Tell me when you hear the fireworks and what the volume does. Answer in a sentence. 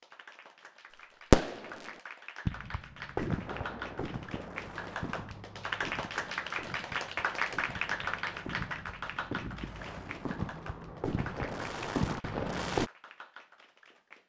The fireworks can be heard from 1.3 to 12.9 s, getting quieter then louder.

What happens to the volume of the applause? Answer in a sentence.
The volume of the applause goes up, then down.